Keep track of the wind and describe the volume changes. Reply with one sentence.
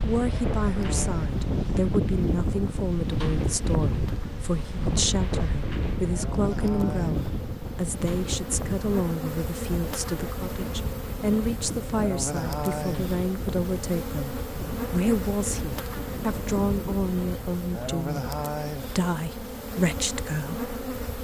The loudness of the wind goes down.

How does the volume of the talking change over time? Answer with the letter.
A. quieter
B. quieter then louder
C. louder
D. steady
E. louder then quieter
D.